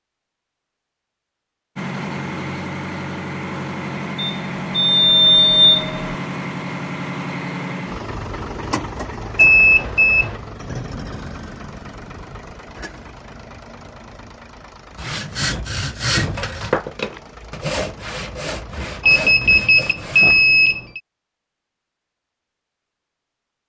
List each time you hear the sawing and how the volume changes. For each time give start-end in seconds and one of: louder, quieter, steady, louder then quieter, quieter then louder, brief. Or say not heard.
14.9-20.4 quieter.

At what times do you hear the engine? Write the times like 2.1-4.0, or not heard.
1.8-19.5.